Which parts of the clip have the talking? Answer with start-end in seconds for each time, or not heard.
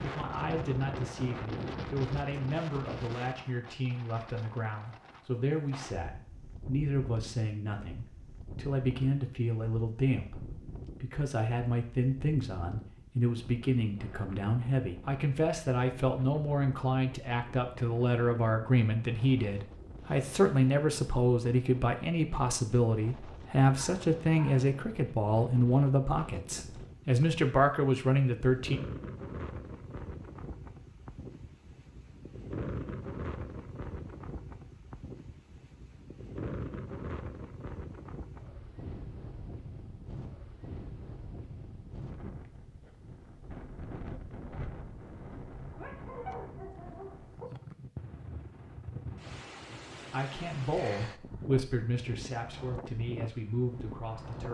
0.0-28.8, 50.1-54.5.